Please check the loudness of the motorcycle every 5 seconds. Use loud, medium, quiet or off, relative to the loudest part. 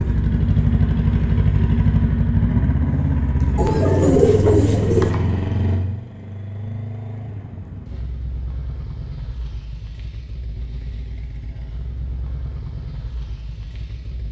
loud, medium, quiet.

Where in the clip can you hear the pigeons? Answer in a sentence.
You can hear the pigeons from 3.5 to 5.1 s.